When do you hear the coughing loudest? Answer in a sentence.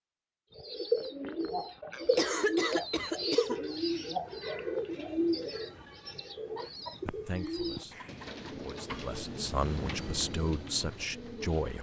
The loudest moment of the coughing is at 2 seconds.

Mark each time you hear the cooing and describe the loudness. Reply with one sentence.
You can hear the cooing from 0.6 to 11.7 s, getting quieter.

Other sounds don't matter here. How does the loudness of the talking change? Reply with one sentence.
The loudness of the talking goes up.